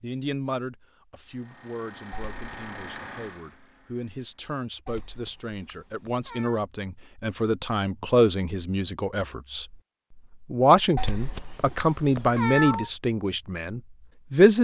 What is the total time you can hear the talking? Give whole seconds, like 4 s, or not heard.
14 s.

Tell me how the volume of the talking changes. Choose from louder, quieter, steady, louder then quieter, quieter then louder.
louder.